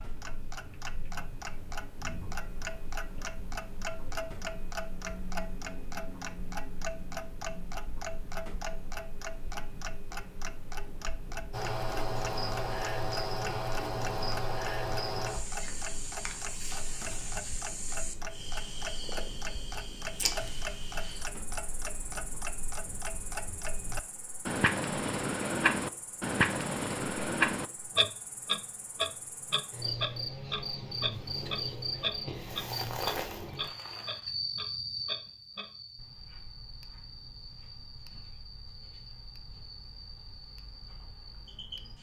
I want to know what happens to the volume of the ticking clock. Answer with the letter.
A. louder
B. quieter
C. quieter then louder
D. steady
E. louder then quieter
E.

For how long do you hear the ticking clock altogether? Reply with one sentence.
The ticking clock can be heard for 42 seconds in total.